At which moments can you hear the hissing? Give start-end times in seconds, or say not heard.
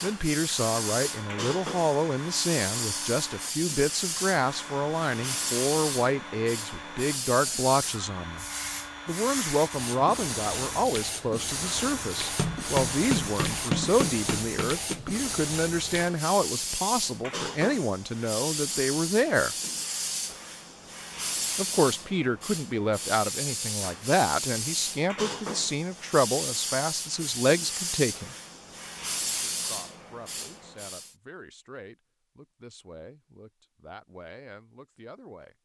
0.0-31.1.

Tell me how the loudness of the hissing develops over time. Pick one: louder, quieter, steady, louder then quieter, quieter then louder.
steady.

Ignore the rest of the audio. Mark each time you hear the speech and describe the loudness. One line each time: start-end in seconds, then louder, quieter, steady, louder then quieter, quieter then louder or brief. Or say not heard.
0.0-8.4 steady
9.1-19.6 steady
21.6-28.4 steady
29.5-35.5 steady.